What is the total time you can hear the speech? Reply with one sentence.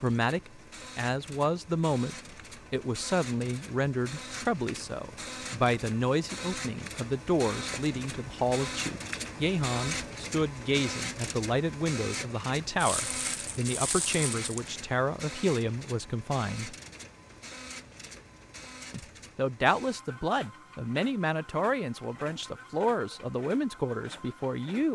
The speech can be heard for 23 seconds in total.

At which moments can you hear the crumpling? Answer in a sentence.
You can hear the crumpling from 12.8 to 14.7 s.